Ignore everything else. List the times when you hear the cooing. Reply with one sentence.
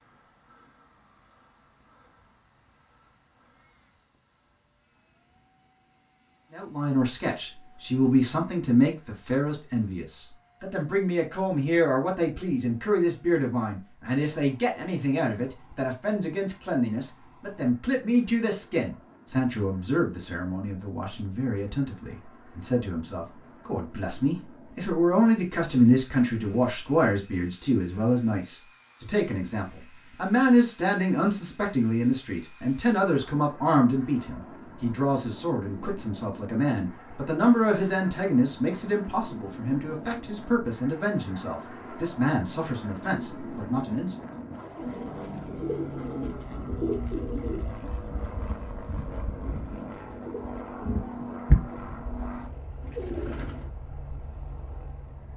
The cooing can be heard from 44.6 to 53.7 s.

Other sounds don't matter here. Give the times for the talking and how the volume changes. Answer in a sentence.
The talking can be heard from 6.5 to 44.2 s, at a steady volume.